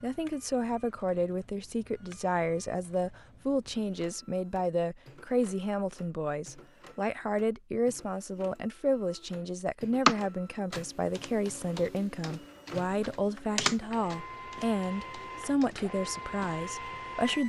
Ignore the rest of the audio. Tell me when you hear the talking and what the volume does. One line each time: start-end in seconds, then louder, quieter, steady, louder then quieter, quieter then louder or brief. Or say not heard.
0.0-17.4 steady.